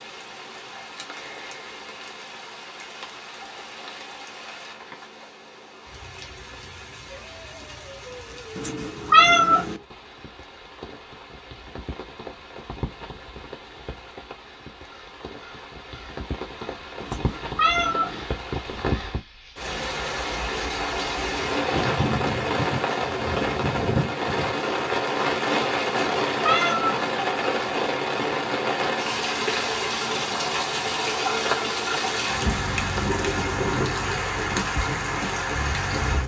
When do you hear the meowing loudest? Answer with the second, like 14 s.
9 s.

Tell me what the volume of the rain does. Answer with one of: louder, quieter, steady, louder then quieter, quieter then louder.
louder.